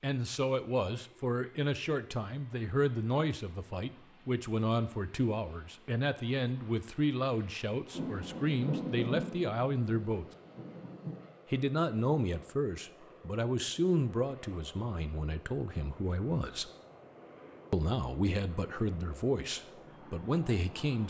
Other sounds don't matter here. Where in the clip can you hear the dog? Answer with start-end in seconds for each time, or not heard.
not heard.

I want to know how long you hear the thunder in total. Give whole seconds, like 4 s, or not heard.
3 s.